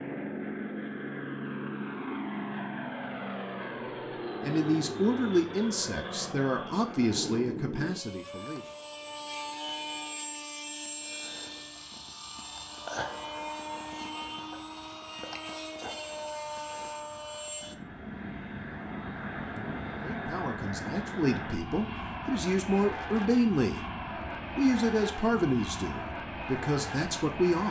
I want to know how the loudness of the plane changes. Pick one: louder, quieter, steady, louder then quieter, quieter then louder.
steady.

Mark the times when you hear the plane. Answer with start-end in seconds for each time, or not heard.
0.0-27.6.